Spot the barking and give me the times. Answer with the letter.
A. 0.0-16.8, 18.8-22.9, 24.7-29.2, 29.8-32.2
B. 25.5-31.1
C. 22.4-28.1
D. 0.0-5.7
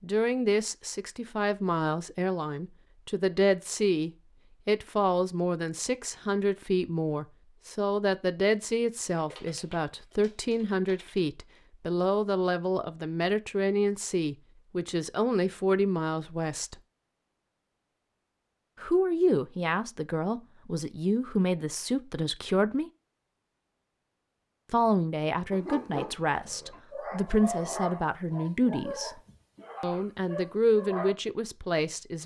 B.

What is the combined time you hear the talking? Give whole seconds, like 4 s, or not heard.
28 s.